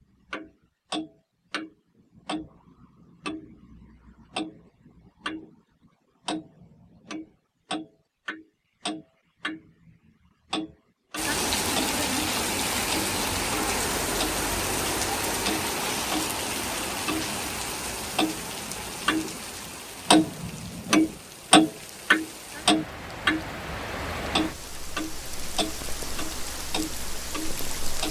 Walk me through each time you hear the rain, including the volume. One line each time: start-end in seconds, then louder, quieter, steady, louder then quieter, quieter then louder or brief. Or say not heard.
11.2-28.0 quieter.